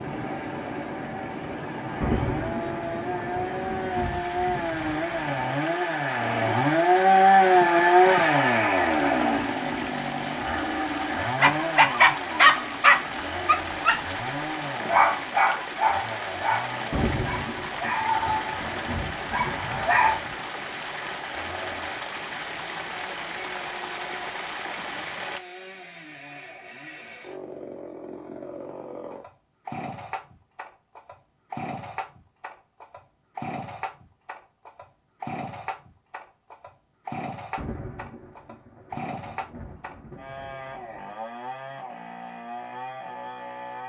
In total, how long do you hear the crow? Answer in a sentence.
You can't hear the crow here.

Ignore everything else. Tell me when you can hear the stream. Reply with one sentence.
You can hear the stream from 0.0 to 25.4 s.